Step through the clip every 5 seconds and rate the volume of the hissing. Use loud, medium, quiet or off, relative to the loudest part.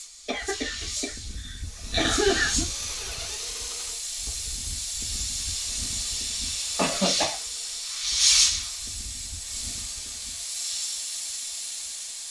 medium, loud, medium.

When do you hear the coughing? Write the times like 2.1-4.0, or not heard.
0.2-2.6, 6.8-7.3.